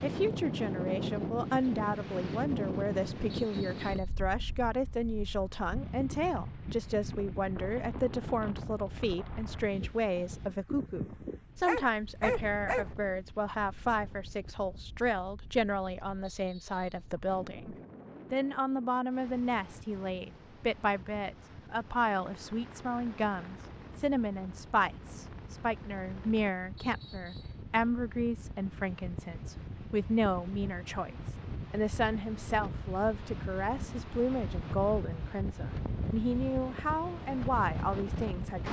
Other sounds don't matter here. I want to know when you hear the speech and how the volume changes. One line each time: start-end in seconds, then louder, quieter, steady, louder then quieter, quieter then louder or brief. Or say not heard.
0.0-38.6 steady.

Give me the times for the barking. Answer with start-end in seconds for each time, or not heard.
11.7-12.8.